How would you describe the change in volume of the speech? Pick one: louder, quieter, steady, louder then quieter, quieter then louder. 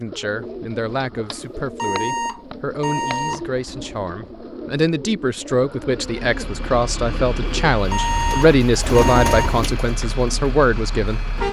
louder.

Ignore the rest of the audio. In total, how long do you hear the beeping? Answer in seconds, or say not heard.
4 s.